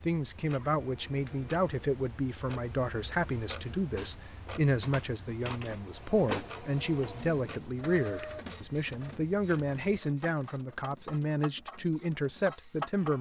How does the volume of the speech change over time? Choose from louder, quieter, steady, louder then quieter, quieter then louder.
steady.